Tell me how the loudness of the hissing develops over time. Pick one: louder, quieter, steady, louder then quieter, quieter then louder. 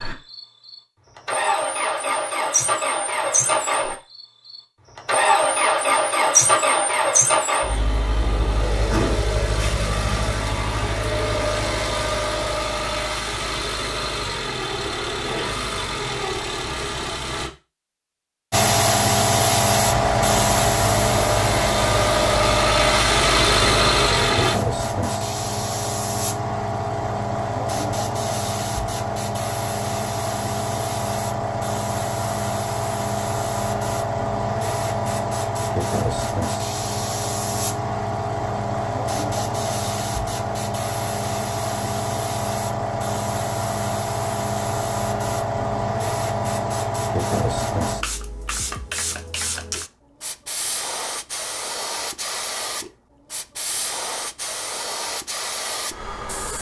quieter.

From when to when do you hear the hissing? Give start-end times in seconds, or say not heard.
18.5-56.5.